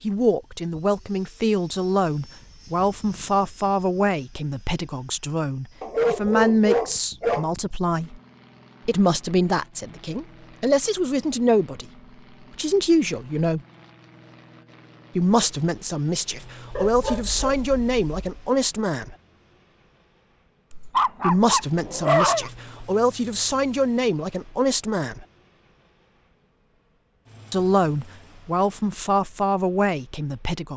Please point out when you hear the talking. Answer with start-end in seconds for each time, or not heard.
0.0-8.2, 8.8-11.8, 12.6-13.6, 15.2-19.1, 21.2-25.2, 27.5-30.7.